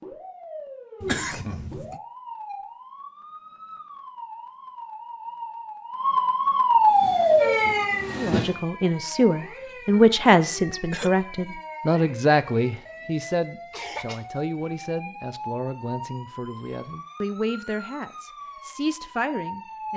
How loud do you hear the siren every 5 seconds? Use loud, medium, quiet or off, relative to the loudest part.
quiet, loud, quiet, quiet.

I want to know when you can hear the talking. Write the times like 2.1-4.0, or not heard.
8.2-19.9.